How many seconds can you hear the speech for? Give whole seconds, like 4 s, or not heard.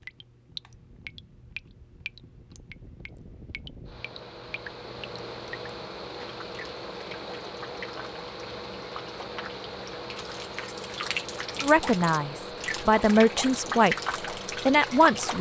3 s.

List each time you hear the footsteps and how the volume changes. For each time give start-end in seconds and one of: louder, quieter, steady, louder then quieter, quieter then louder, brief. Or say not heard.
not heard.